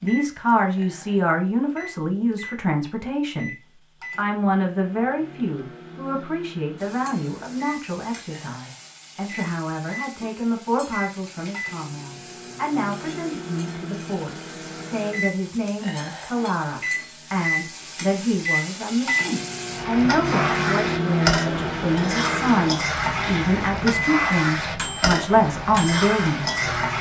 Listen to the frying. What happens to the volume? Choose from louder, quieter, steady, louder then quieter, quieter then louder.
louder.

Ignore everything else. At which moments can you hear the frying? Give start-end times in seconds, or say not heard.
6.8-26.9.